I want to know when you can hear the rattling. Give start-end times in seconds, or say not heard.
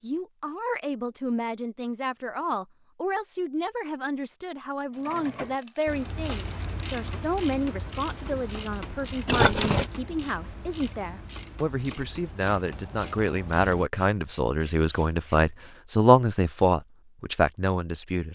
5.0-7.3, 9.2-9.9.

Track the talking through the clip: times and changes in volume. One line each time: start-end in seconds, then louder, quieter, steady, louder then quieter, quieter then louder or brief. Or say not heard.
0.0-18.3 louder.